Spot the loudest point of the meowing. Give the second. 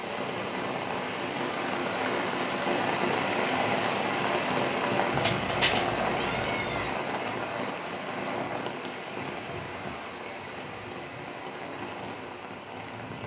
6 s.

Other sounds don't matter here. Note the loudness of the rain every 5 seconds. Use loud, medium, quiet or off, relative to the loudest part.
loud, loud, medium.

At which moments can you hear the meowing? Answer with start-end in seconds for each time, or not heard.
5.1-6.9.